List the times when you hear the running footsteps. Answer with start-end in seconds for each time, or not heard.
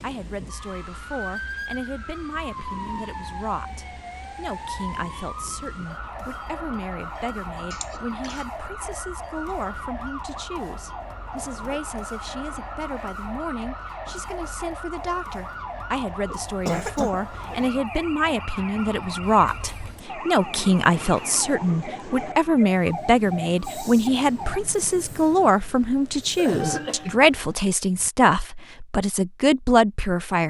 not heard.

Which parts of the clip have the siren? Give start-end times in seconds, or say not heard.
0.0-24.6.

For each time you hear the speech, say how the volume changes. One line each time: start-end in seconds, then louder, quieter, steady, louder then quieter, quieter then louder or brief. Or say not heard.
0.0-30.4 louder.